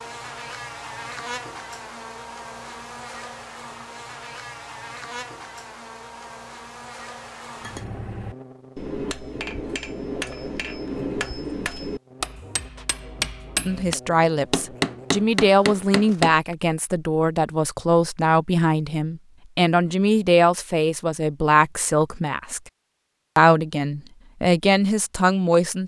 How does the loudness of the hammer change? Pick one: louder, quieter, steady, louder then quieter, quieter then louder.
louder.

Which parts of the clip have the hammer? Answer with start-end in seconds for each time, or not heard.
7.6-16.4.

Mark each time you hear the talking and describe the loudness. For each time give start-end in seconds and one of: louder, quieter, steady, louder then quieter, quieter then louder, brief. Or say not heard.
13.7-22.6 steady
23.4-25.8 brief.